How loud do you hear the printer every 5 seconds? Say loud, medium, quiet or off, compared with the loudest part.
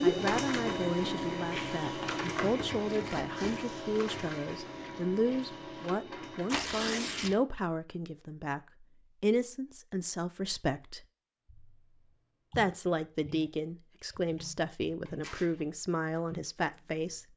loud, medium, off, off.